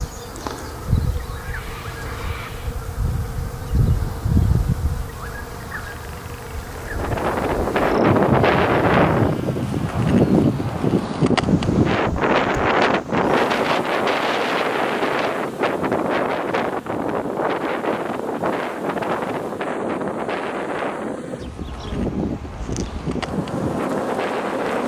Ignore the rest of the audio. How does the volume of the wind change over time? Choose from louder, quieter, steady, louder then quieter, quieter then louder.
quieter.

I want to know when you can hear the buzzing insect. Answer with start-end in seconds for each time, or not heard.
0.0-24.8.